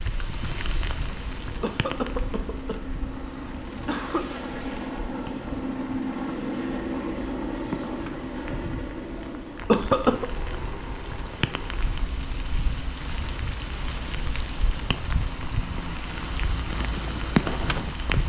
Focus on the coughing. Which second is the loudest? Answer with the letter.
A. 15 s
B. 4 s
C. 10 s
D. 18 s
C.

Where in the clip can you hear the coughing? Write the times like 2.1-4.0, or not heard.
1.6-4.3, 9.7-10.2.